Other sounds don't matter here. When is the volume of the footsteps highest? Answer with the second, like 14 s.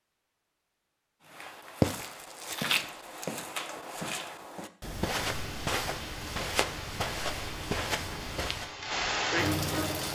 2 s.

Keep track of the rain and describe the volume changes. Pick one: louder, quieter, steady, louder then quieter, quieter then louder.
louder.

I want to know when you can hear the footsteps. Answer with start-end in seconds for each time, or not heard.
1.2-8.7.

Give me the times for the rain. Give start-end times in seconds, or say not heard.
5.2-10.1.